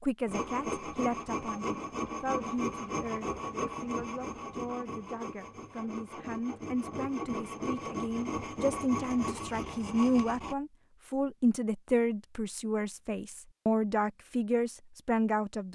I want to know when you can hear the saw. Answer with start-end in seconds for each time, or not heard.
0.2-10.6.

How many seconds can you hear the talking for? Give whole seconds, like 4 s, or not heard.
16 s.